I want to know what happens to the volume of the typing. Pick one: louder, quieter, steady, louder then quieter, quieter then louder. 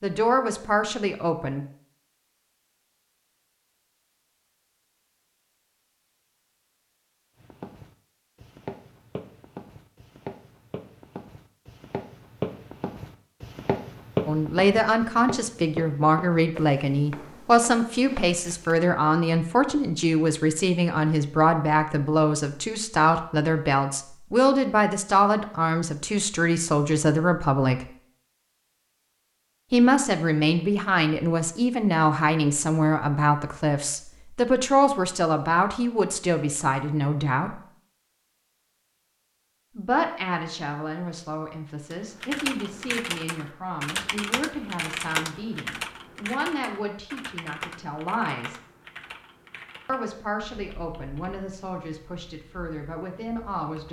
quieter.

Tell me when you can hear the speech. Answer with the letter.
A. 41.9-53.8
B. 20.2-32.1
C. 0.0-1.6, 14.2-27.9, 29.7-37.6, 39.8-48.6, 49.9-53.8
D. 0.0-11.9
C.